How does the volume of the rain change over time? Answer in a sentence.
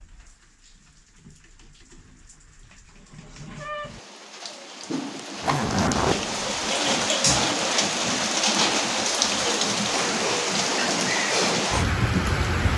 The loudness of the rain goes up.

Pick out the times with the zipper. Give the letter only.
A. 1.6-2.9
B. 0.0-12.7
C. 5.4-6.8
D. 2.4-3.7
C.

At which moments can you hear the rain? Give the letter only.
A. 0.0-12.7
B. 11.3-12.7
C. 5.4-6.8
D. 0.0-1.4
A.